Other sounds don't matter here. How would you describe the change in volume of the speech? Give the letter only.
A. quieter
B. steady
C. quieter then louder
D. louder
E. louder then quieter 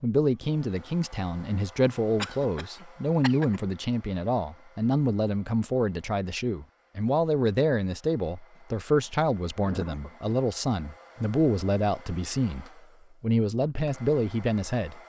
B.